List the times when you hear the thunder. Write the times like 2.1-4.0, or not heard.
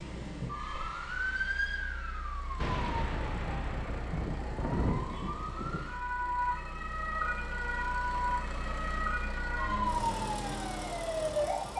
2.6-5.8.